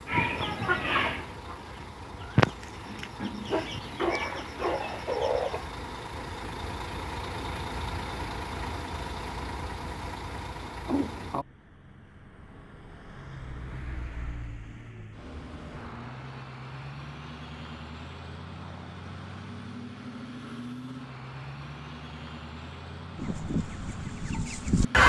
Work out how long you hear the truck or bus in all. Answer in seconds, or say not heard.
25 s.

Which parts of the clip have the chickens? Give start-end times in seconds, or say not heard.
0.1-5.7, 23.1-25.0.